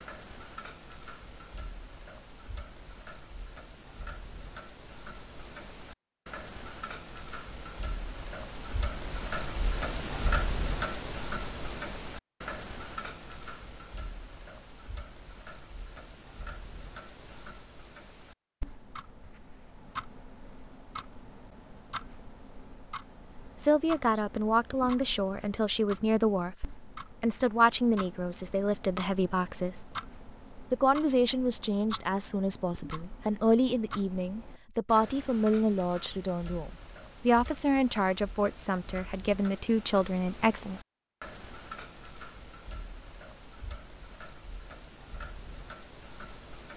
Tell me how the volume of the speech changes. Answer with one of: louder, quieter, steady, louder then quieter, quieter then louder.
steady.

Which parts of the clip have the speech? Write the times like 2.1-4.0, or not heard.
23.6-29.9, 30.7-40.8.